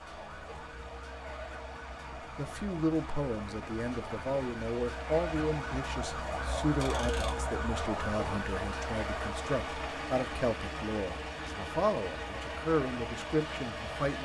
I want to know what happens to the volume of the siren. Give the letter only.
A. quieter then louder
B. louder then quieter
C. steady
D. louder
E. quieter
B.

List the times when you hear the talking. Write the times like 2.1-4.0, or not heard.
2.4-14.2.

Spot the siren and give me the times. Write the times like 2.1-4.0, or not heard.
0.0-14.2.